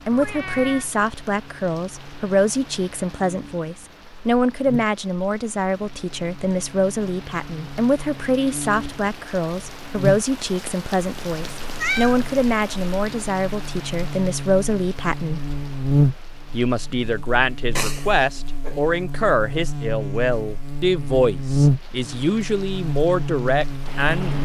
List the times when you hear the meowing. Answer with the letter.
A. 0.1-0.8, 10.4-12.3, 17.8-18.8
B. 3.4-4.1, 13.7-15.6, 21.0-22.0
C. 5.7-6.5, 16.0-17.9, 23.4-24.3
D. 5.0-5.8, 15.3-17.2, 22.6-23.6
A.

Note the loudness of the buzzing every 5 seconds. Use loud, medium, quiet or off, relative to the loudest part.
quiet, quiet, medium, loud, loud.